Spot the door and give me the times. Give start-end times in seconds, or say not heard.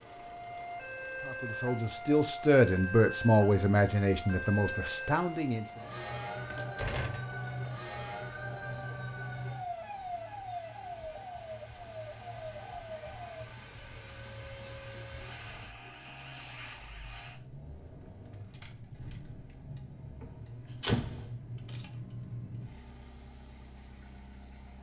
6.5-7.3, 20.2-21.3.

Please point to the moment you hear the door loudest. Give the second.
21 s.